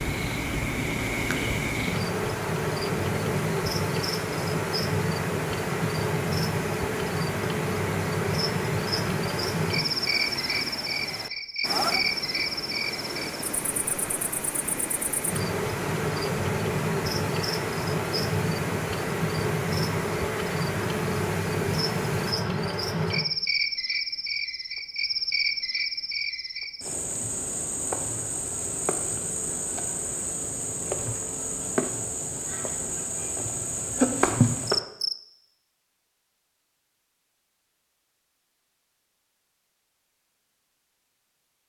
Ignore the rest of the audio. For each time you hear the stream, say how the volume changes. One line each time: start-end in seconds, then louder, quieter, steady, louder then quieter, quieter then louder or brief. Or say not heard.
0.0-22.4 steady.